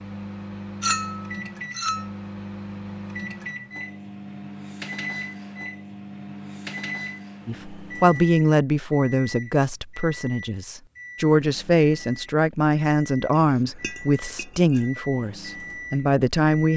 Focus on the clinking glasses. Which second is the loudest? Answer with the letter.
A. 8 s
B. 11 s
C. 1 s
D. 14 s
C.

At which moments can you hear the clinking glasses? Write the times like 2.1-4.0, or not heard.
0.8-2.1, 13.3-14.8.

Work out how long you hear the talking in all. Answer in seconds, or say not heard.
9 s.